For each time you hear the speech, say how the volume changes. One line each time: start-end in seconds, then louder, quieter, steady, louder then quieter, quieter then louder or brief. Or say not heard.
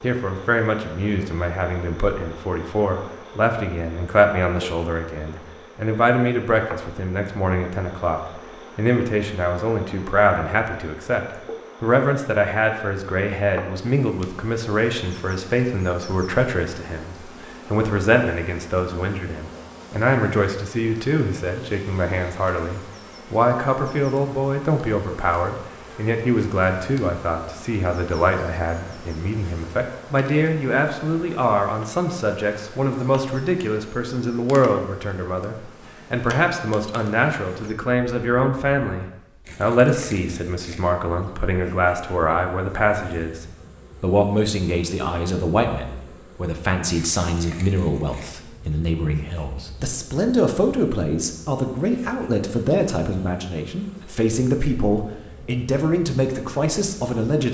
0.0-57.4 steady.